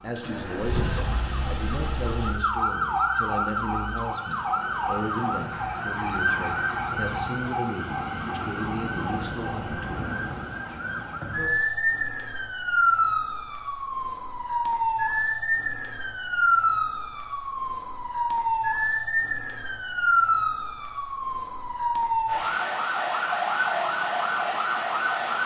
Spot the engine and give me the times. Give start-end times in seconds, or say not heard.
0.1-7.2.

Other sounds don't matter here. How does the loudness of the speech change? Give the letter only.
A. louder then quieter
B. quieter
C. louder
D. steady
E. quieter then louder
D.